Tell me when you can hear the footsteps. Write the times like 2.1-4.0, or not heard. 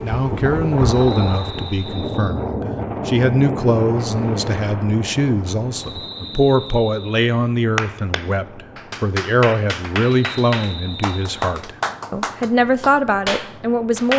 not heard.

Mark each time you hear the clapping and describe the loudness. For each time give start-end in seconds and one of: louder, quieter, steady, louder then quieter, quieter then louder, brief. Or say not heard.
7.8-14.1 steady.